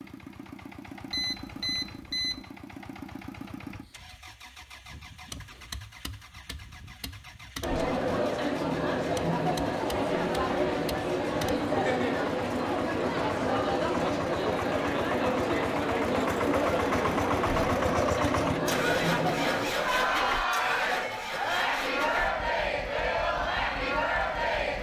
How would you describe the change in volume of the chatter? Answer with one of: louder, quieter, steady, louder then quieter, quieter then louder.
steady.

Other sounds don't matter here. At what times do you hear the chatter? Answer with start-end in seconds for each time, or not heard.
7.6-24.7.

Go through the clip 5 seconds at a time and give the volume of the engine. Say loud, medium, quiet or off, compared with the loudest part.
quiet, quiet, medium, loud, medium.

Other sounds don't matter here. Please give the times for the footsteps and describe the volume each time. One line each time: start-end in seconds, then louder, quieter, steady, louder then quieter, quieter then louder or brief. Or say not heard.
not heard.